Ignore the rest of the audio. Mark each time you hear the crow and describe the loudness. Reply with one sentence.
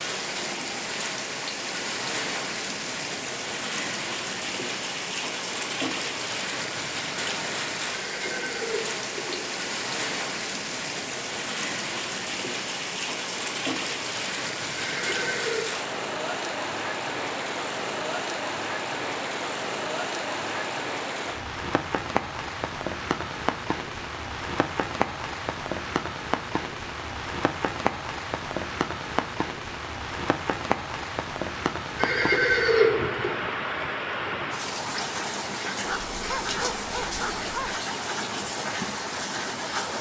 You can't hear the crow here.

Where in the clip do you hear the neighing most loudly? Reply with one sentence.
The volume of the neighing peaks at 33 seconds.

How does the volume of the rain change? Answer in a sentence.
The loudness of the rain stays about the same.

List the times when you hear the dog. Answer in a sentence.
The dog can be heard from 35.9 to 37.8 s.